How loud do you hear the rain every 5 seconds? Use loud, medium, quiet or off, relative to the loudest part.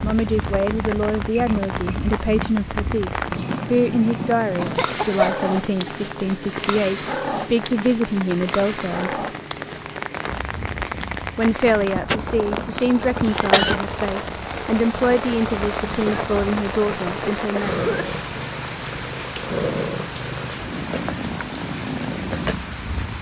loud, medium, loud, loud, medium.